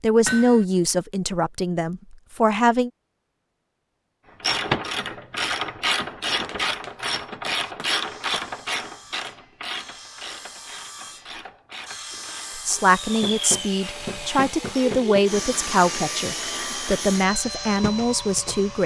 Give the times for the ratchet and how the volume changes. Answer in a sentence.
The ratchet can be heard from 4.4 to 15.1 s, getting quieter.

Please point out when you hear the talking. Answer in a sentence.
You can hear the talking from 0.0 to 2.9 s and from 12.7 to 18.8 s.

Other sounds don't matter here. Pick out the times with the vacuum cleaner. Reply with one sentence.
The vacuum cleaner can be heard from 12.8 to 18.8 s.